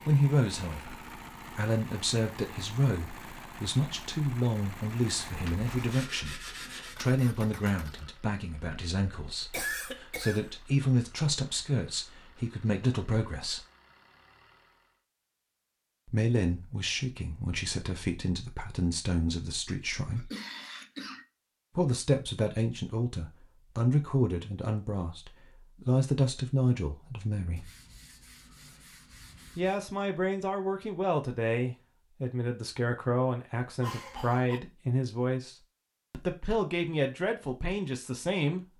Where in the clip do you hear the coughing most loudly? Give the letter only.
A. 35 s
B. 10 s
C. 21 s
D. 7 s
B.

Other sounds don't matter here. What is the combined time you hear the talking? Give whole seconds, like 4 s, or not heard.
33 s.